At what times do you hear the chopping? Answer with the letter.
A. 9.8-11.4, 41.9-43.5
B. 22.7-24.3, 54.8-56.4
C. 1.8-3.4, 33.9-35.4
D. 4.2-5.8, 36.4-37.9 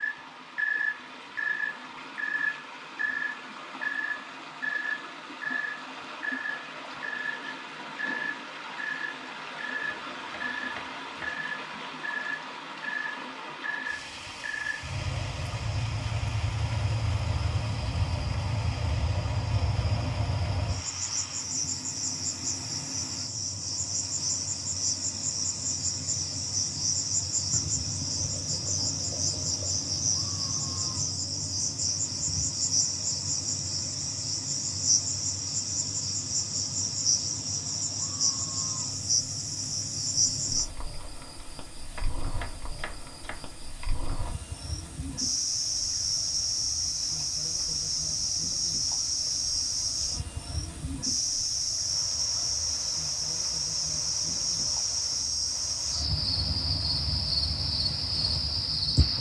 A.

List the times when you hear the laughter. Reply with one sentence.
You can't hear the laughter here.